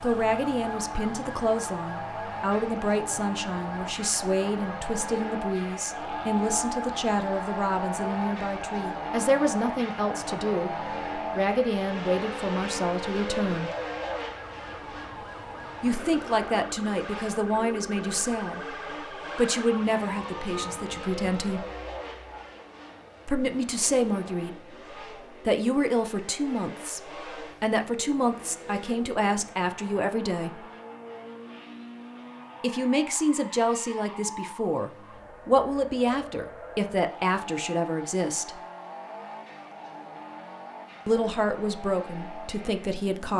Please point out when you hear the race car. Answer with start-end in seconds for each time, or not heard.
0.0-43.3.